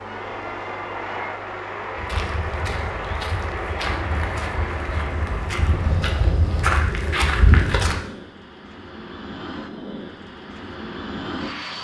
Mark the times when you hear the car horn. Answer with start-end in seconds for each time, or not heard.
not heard.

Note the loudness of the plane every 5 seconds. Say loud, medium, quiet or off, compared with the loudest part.
loud, medium, loud.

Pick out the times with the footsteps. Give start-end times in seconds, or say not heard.
1.9-8.0.